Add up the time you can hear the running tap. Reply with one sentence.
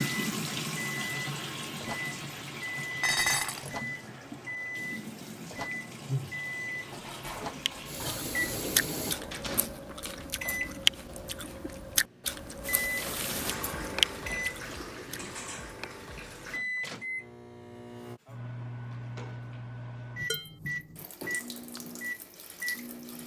You can hear the running tap for 16 seconds altogether.